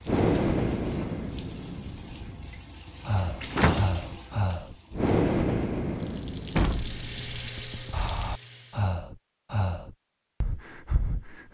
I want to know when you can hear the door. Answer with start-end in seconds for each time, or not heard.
3.5-4.0, 6.5-8.0.